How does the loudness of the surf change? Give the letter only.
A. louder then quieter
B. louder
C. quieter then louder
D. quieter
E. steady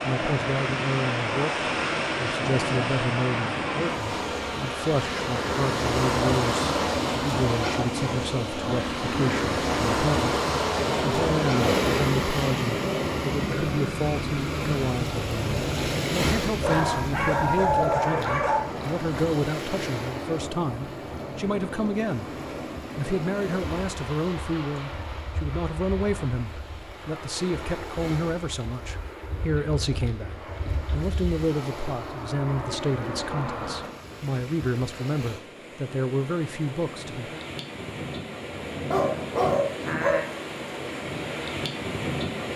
C.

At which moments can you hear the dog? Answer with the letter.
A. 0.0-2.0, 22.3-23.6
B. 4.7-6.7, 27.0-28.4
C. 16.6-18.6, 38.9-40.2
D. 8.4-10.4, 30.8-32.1
C.